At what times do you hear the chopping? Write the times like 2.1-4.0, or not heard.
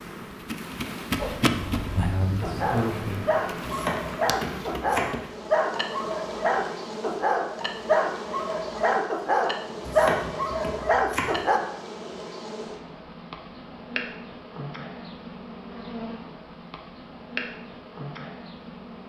3.6-5.2, 9.8-11.4.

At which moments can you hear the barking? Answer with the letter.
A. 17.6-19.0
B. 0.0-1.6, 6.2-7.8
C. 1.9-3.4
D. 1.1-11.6
D.